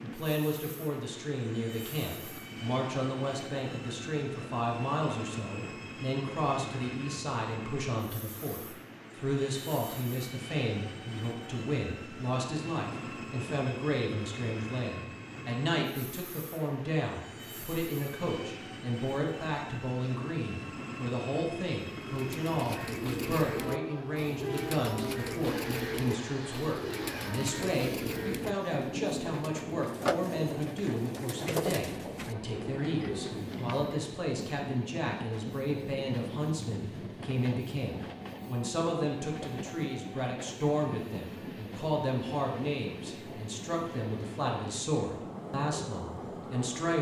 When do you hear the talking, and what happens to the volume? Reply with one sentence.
You can hear the talking from 0.0 to 46.9 s, at a steady volume.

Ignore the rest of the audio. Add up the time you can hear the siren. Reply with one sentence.
You can't hear the siren here.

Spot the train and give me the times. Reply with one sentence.
You can hear the train from 0.0 to 46.9 s.